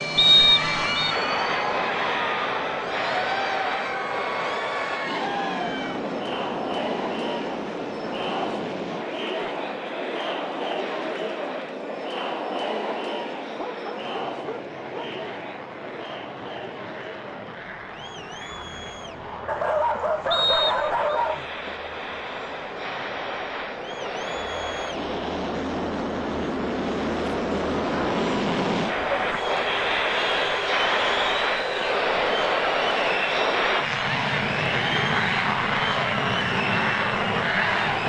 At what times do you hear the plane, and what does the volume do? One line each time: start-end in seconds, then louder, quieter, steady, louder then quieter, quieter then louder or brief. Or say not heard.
0.0-38.0 quieter then louder.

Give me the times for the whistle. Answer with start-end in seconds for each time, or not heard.
0.1-1.1, 20.3-21.2.